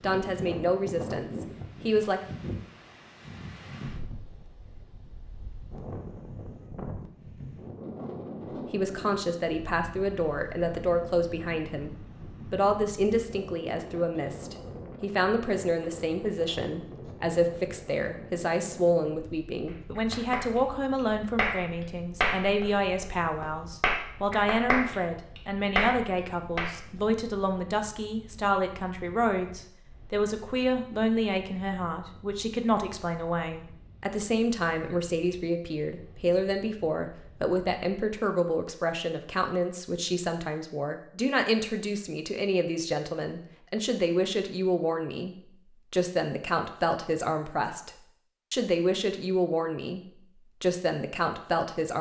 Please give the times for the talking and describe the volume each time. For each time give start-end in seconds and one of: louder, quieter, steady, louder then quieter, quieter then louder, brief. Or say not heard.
0.0-2.2 brief
8.7-51.9 steady.